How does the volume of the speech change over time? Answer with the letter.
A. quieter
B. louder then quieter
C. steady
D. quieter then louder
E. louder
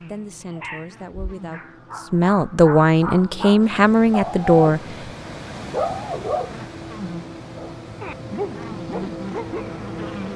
E.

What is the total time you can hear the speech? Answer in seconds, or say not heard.
5 s.